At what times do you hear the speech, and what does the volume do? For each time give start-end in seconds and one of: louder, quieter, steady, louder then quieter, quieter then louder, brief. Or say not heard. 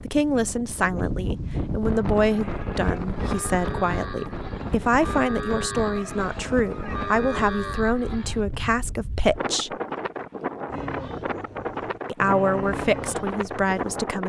0.1-9.8 steady
12.1-14.2 brief.